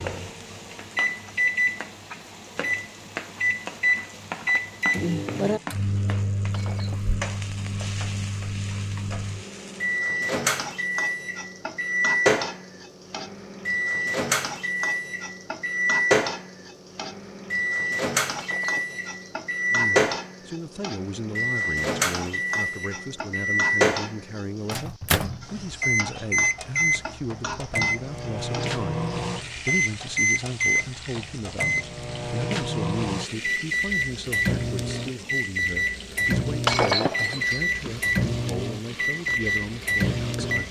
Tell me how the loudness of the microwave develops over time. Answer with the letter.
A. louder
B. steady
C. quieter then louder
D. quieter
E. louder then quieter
B.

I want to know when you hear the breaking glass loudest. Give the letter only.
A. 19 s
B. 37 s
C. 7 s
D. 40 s
B.